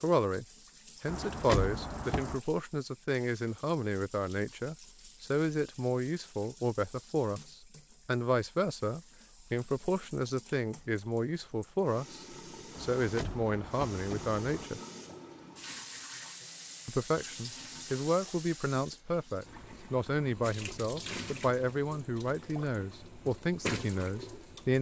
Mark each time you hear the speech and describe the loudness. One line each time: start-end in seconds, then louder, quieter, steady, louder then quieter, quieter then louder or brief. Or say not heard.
0.0-14.8 steady
16.9-24.7 steady.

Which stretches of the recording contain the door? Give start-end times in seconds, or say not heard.
1.1-2.4, 12.8-14.7.